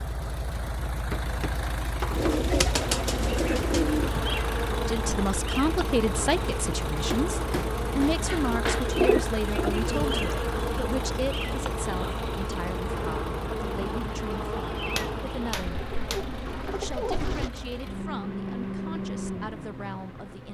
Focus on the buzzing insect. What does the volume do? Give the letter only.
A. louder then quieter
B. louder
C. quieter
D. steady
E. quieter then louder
C.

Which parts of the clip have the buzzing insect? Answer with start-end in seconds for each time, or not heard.
2.7-20.5.